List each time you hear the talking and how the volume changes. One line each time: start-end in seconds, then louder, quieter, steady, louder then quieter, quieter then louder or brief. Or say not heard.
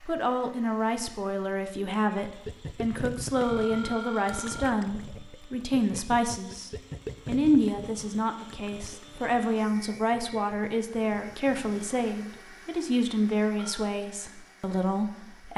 0.0-15.5 steady.